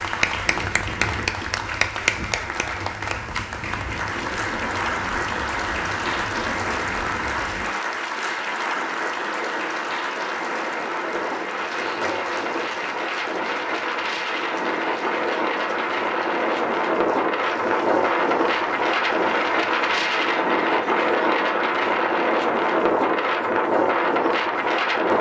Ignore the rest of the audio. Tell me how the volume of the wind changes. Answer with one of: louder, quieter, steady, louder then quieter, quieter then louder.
louder.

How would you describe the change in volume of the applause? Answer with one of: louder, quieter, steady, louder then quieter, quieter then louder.
quieter.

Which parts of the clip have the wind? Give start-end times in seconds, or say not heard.
0.0-25.1.